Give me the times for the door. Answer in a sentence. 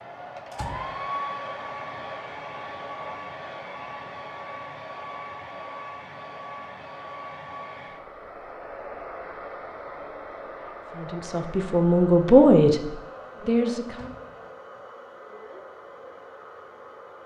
You can hear the door from 0.5 to 1.4 s and from 13.9 to 14.8 s.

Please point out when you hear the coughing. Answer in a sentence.
The coughing can't be heard in this clip.